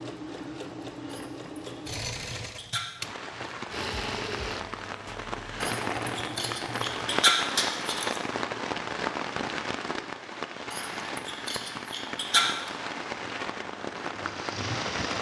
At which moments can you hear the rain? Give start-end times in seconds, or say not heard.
3.0-15.1.